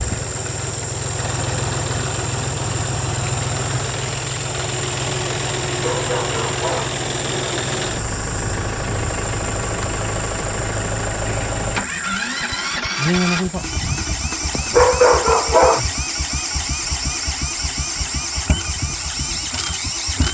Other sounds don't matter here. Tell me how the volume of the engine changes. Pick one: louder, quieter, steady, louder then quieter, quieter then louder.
steady.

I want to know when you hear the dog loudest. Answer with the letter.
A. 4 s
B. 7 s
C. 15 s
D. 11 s
C.